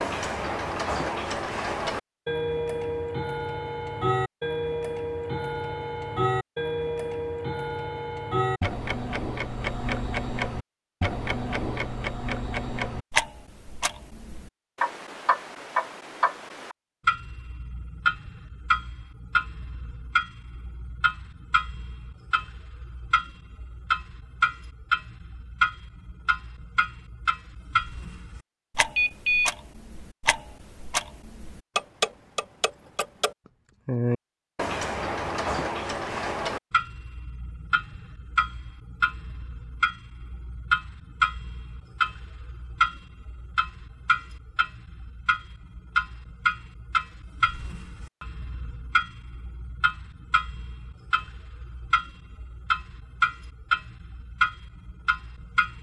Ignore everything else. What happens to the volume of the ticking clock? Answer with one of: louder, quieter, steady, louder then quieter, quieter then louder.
steady.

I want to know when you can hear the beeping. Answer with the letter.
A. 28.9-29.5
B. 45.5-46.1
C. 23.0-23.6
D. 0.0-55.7
A.